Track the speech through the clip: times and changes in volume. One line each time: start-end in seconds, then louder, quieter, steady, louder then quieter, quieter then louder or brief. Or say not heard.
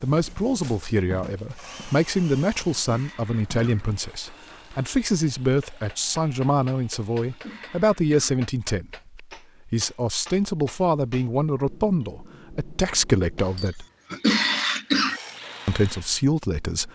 0.0-13.8 steady
15.7-16.9 brief.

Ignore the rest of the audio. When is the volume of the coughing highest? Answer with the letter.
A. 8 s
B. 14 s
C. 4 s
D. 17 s
B.